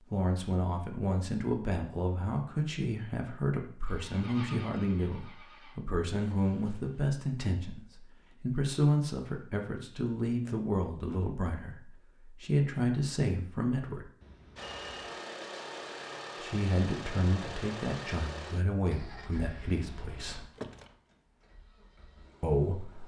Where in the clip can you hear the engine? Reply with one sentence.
You can hear the engine from 3.9 to 5.8 s and from 14.6 to 23.0 s.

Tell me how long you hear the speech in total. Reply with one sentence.
The speech can be heard for 19 seconds in total.